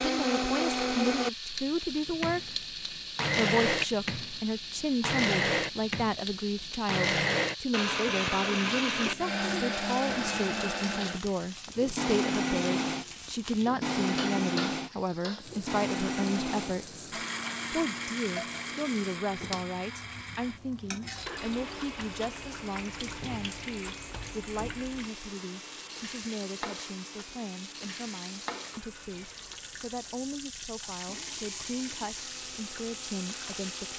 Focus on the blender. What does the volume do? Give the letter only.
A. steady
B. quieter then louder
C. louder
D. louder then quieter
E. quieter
E.